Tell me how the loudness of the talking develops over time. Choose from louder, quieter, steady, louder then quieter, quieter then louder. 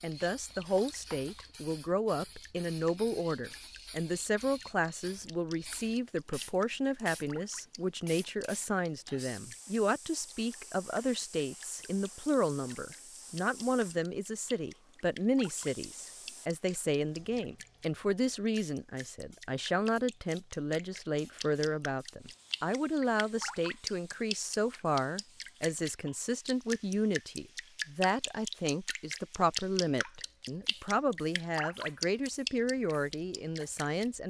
steady.